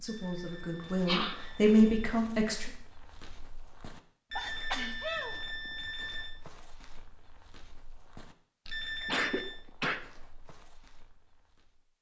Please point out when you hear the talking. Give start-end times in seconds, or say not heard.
0.0-2.7.